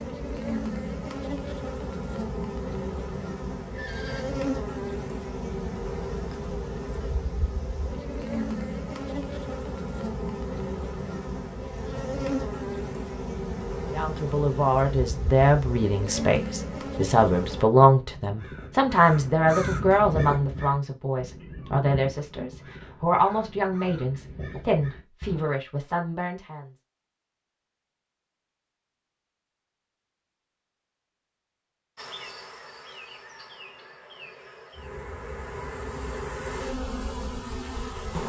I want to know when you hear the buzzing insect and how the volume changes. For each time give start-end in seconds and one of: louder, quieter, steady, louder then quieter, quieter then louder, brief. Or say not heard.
0.0-17.6 steady
31.9-38.2 louder.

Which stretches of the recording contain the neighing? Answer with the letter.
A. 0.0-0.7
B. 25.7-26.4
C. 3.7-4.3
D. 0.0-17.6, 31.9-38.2
C.